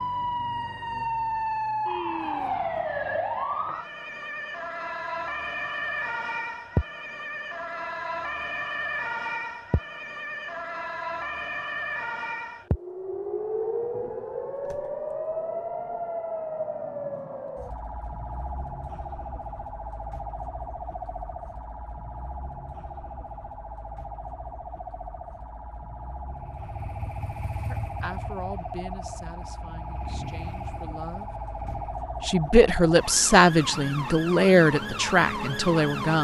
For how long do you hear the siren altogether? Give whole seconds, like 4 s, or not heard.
36 s.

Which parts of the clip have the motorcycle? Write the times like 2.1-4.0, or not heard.
26.3-32.0.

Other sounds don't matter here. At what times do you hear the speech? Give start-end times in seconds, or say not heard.
27.7-31.2, 32.2-36.2.